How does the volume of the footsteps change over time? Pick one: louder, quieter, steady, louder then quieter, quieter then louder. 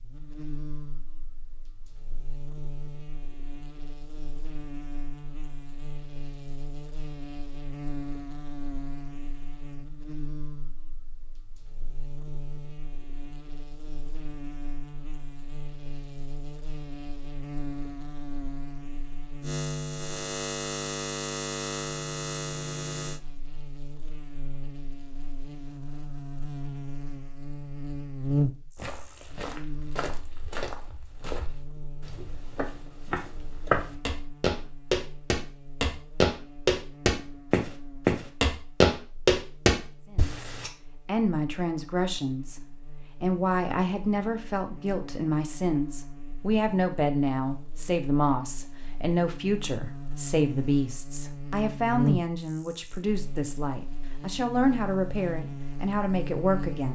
louder.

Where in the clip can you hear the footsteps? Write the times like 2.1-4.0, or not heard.
28.8-40.7.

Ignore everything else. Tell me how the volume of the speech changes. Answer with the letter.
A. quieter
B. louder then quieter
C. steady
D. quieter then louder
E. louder
C.